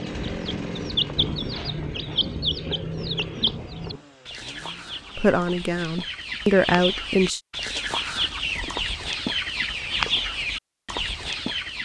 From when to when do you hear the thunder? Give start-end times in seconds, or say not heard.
0.1-4.0.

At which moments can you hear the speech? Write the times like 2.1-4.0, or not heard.
5.2-7.4.